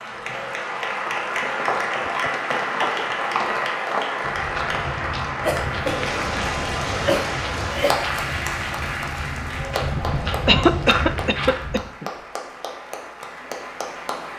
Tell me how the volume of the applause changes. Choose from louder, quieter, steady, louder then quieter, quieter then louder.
quieter.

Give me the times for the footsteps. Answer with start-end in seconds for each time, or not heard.
1.4-11.8.